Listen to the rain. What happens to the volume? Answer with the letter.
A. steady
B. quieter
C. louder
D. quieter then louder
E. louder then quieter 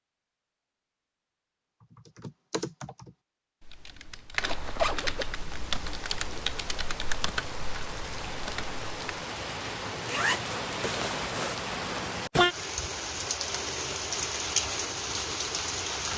C.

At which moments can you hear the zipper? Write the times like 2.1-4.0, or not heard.
4.4-5.3, 10.0-11.6.